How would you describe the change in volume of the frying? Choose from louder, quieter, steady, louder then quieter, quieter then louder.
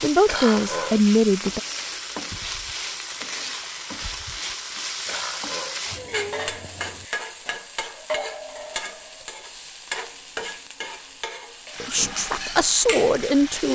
steady.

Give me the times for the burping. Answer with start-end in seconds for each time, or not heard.
0.2-1.0, 5.0-5.8, 11.8-12.2.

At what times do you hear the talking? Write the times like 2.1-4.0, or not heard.
0.0-1.6, 11.8-13.7.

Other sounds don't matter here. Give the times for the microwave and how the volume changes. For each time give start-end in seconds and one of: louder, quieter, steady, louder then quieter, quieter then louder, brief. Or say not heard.
not heard.